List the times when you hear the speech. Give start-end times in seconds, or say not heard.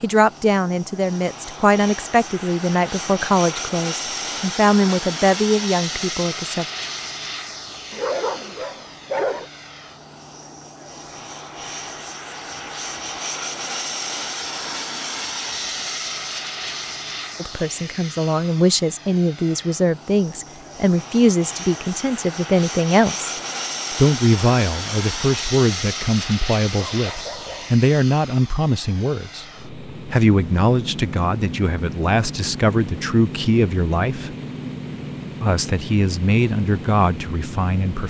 0.0-6.7, 17.4-23.4, 23.9-29.4, 30.1-34.3, 35.4-38.0.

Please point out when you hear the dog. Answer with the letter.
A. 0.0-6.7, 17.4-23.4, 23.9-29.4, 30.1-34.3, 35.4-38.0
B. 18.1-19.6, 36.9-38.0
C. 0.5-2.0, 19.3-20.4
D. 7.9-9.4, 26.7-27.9
D.